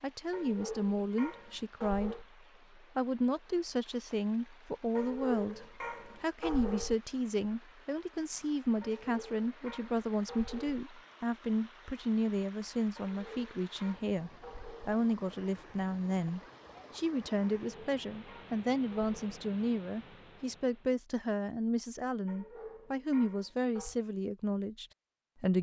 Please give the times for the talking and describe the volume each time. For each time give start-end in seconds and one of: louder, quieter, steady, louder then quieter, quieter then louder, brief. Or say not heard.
0.0-25.5 steady.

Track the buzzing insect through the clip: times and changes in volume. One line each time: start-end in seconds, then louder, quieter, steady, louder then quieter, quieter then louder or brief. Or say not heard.
not heard.